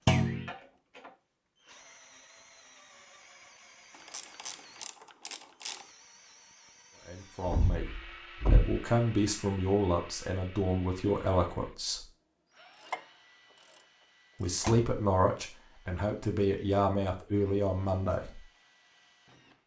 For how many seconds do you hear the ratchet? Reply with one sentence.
You can hear the ratchet for 4 seconds altogether.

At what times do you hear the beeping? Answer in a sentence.
The beeping can't be heard in this clip.